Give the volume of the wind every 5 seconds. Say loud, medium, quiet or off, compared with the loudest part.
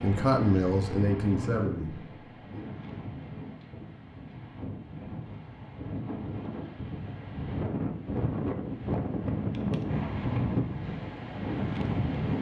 medium, loud, loud.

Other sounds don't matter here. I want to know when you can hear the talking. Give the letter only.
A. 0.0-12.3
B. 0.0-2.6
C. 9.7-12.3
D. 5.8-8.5
B.